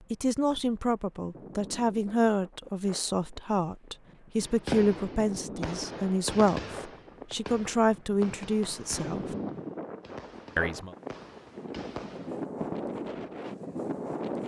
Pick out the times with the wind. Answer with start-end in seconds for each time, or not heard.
0.0-14.4.